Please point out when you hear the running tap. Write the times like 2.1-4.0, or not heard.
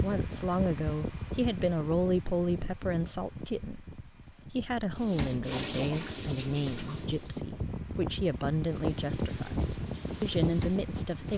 5.0-7.4, 8.7-11.3.